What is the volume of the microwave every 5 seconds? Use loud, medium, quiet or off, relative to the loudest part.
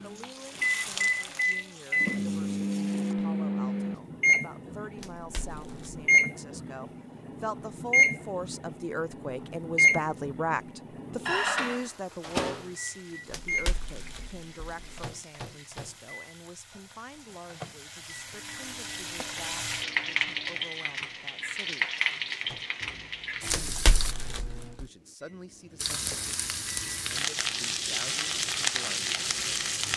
loud, loud, medium, quiet, quiet, quiet.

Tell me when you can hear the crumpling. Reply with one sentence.
The crumpling can be heard from 5.0 to 6.0 s, from 13.3 to 15.1 s and from 23.5 to 24.9 s.